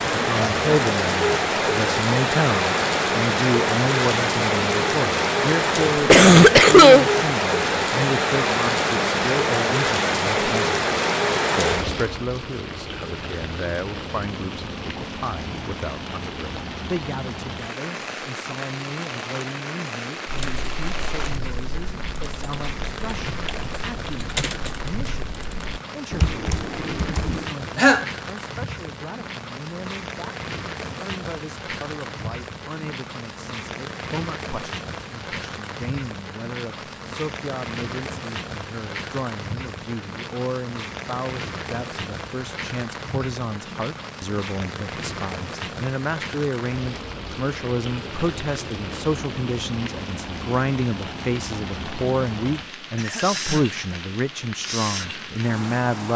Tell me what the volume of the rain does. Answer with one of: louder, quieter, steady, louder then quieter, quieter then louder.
quieter.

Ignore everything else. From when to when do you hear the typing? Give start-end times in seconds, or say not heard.
20.2-27.5.